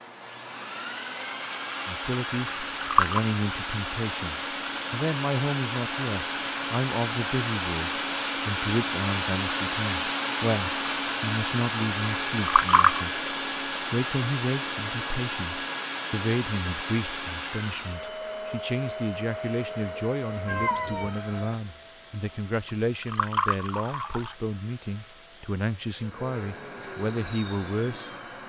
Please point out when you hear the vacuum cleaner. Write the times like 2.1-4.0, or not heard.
0.0-28.4.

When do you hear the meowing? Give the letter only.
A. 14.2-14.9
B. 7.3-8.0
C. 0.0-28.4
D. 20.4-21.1
D.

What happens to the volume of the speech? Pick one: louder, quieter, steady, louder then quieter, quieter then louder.
steady.